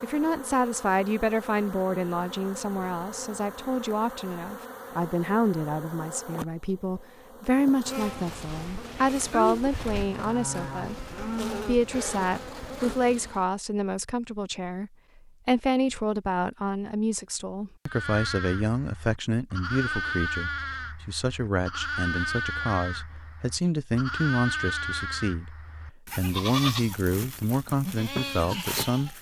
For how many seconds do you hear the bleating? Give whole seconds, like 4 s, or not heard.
14 s.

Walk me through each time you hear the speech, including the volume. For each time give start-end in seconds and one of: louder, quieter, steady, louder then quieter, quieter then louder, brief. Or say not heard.
0.0-25.6 steady
26.1-29.1 brief.